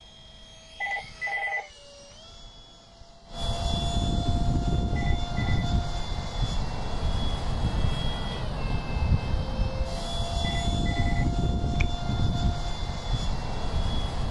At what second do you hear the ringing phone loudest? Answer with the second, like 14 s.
1 s.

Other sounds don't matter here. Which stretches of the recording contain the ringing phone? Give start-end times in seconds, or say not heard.
0.8-1.7, 5.0-5.7, 10.4-11.8.